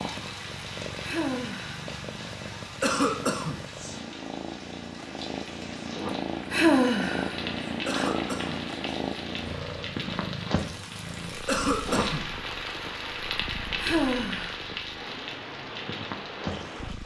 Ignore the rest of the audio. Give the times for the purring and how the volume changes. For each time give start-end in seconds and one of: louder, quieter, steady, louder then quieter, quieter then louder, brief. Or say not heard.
0.0-17.0 louder then quieter.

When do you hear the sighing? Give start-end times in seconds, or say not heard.
1.0-1.8, 6.5-8.1, 13.8-14.6.